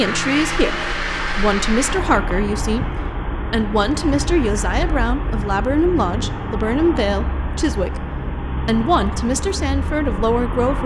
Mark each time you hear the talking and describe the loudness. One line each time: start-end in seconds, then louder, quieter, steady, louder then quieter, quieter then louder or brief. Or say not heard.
0.0-10.8 steady.